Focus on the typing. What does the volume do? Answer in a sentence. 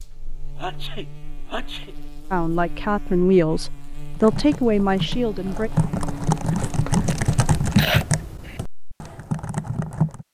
The volume of the typing goes up, then down.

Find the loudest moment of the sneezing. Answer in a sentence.
The volume of the sneezing peaks at 8 seconds.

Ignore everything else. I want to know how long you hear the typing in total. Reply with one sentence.
You can hear the typing for 6 seconds altogether.